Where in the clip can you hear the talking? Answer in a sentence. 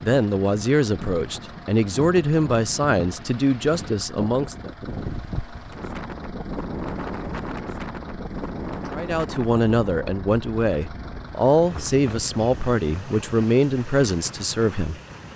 The talking can be heard from 0.0 to 4.7 s and from 8.9 to 15.0 s.